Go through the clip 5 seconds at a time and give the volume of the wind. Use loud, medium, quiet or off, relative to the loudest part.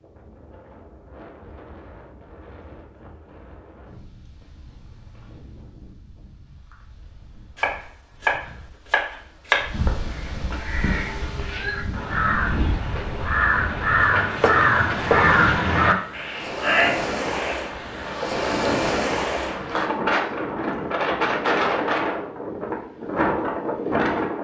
quiet, quiet, medium, loud, loud.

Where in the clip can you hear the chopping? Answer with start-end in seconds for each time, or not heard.
7.5-9.8, 14.2-15.4.